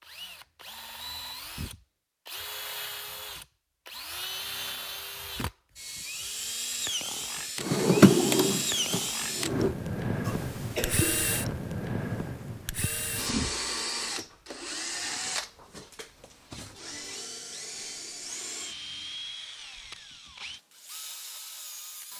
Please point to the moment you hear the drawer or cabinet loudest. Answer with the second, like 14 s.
8 s.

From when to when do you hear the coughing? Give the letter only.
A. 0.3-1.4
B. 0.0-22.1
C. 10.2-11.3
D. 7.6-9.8
C.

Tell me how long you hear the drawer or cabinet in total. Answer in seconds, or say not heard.
2 s.